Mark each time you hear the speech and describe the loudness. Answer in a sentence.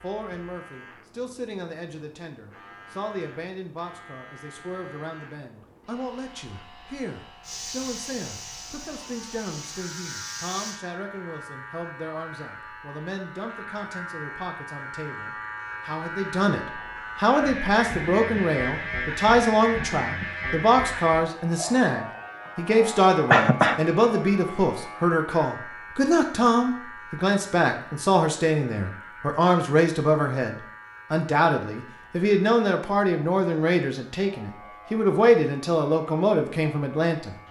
The speech can be heard from 0.0 to 37.4 s, getting louder.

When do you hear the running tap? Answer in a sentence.
The running tap can be heard from 7.4 to 10.8 s.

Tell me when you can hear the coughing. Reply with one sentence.
You can hear the coughing from 23.3 to 23.8 s.